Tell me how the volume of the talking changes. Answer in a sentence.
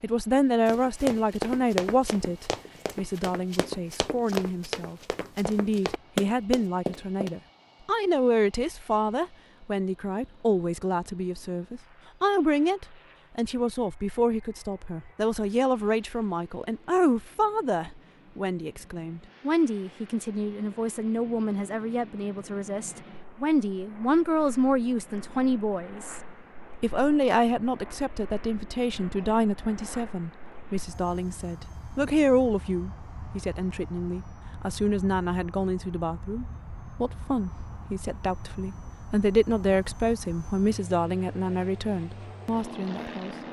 The volume of the talking stays about the same.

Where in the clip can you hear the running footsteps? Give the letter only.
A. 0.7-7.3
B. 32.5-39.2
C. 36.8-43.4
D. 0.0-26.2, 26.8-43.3
A.